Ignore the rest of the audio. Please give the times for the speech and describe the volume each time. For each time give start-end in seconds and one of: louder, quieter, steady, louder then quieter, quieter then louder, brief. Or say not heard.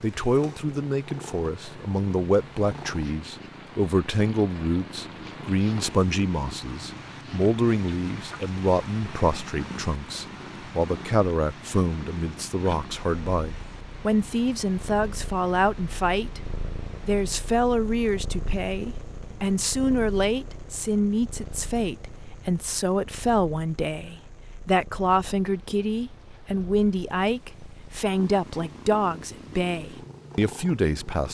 0.0-31.2 steady.